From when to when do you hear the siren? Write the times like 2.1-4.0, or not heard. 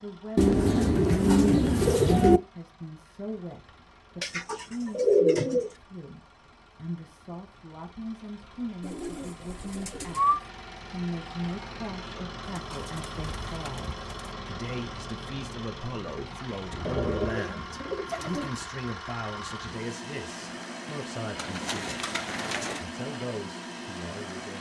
not heard.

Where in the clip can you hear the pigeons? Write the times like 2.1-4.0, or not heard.
0.3-2.4, 4.2-5.7, 8.8-10.4, 12.5-14.1, 16.9-18.6, 21.4-22.9.